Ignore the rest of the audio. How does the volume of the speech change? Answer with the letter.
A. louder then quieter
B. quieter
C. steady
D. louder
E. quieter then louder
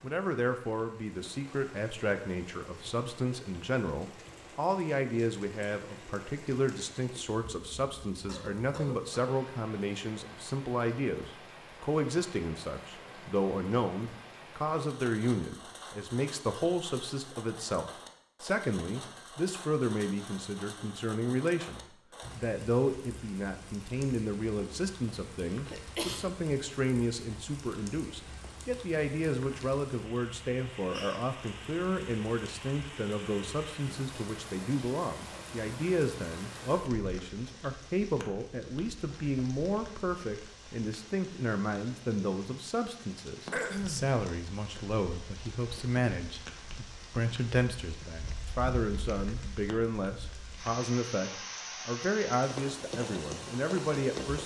C.